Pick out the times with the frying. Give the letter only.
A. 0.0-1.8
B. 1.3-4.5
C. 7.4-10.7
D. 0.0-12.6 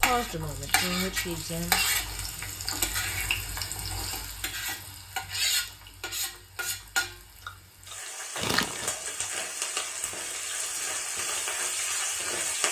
D.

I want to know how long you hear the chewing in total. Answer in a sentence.
You can hear the chewing for 3 seconds altogether.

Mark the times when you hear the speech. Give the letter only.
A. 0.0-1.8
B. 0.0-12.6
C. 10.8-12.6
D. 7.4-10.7
A.